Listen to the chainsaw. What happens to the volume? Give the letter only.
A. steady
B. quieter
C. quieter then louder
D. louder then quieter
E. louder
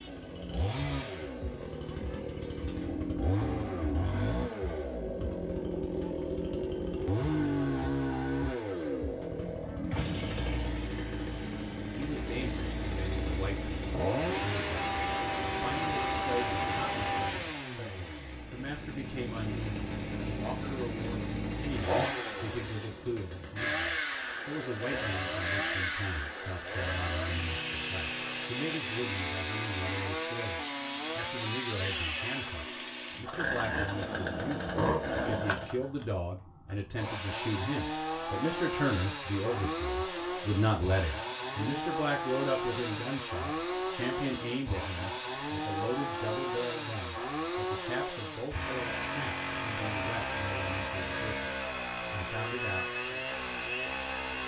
A.